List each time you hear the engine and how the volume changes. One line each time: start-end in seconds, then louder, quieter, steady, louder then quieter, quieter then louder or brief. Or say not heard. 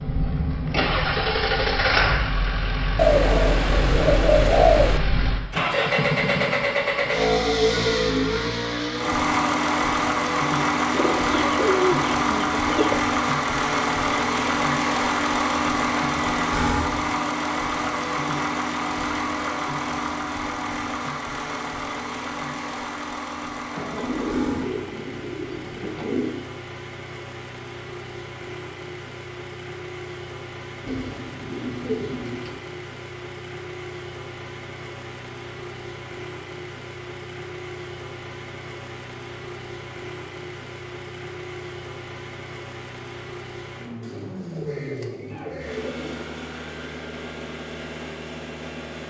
0.0-49.0 quieter.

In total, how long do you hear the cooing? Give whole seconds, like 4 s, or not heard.
11 s.